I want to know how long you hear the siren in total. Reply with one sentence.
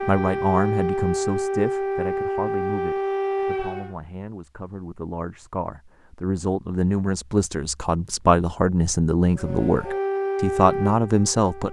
You can hear the siren for 6 seconds altogether.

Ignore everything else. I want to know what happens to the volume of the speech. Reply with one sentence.
The loudness of the speech goes down, then up.